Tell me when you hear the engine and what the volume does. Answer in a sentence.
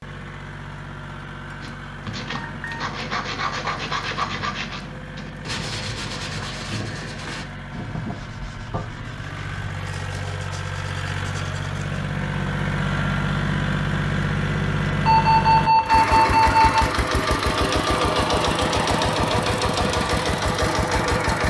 You can hear the engine from 0.0 to 21.4 s, getting louder.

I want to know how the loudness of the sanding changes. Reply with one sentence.
The volume of the sanding goes down.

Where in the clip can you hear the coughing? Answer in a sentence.
You can't hear the coughing here.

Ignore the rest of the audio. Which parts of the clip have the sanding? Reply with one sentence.
The sanding can be heard from 1.6 to 11.8 s.